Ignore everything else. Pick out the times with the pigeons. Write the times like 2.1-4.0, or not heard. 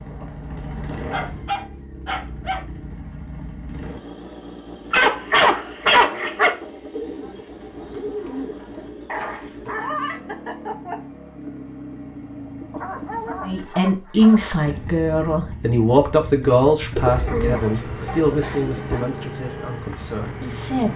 6.9-8.9, 16.9-19.0.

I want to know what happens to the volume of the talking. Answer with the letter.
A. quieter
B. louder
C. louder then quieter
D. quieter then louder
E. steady
A.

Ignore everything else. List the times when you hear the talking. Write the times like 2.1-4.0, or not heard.
13.4-20.9.